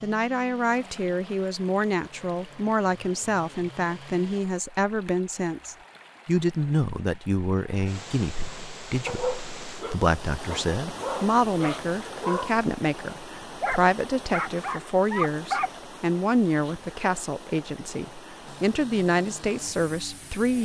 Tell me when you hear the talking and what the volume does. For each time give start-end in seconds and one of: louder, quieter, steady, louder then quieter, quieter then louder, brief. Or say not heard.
0.0-20.5 steady.